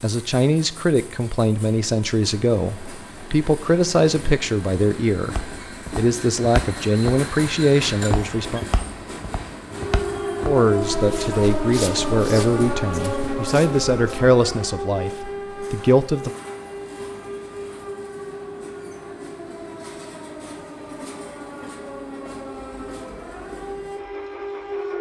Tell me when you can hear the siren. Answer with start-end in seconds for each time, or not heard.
9.7-24.9.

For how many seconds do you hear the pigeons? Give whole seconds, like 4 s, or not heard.
not heard.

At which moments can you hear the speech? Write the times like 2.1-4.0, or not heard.
0.0-8.6, 10.4-16.3.